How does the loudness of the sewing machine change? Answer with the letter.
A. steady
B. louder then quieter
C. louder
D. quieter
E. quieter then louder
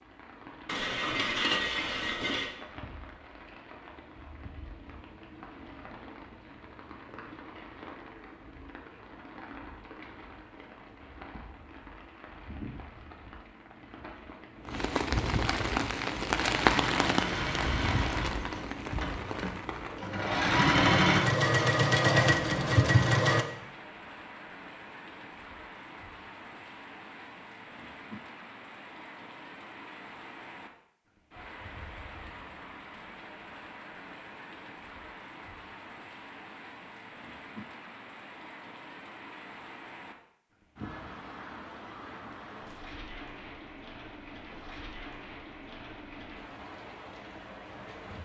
E.